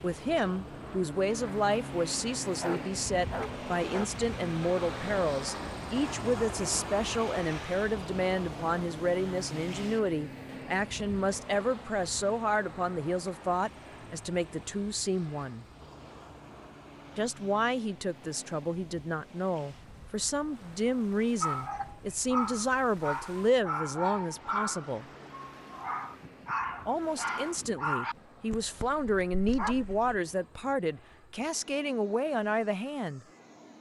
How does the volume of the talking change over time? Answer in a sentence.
The loudness of the talking stays about the same.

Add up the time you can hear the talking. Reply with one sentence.
The talking can be heard for 30 seconds in total.